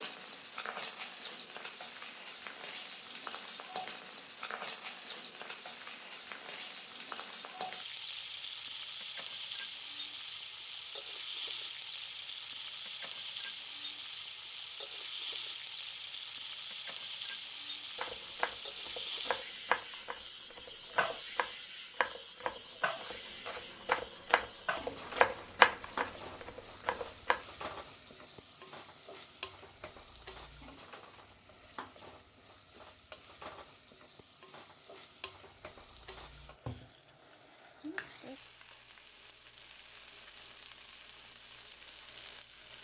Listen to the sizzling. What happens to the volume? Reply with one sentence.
The volume of the sizzling goes down.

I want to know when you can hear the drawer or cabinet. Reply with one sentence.
You can't hear the drawer or cabinet here.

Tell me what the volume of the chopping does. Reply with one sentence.
The loudness of the chopping goes down, then up.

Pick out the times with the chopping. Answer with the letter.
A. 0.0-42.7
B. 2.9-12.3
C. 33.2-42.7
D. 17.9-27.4
D.